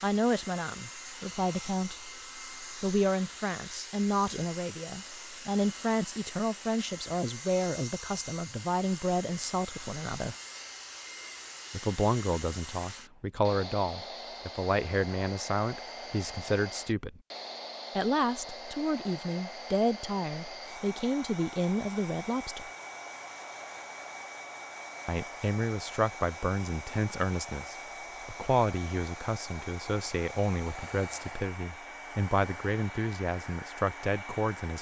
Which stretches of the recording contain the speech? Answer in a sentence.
The speech can be heard from 0.0 to 10.3 s, from 11.7 to 17.2 s, from 17.9 to 22.7 s and from 25.1 to 34.7 s.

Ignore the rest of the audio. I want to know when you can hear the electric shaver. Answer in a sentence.
The electric shaver can't be heard in this clip.